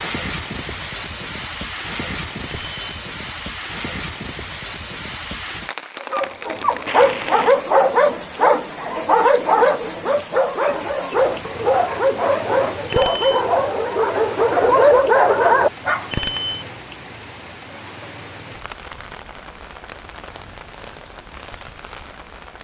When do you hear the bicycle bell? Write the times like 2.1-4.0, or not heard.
2.5-3.0, 12.9-13.4, 16.1-16.6.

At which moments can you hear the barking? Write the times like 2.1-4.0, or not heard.
6.0-16.1.